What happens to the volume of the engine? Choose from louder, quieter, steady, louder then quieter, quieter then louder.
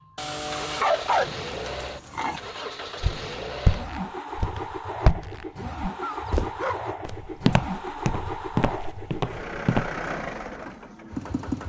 steady.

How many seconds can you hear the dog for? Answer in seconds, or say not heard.
4 s.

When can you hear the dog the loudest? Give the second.
1 s.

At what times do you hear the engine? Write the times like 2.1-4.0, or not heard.
0.0-11.6.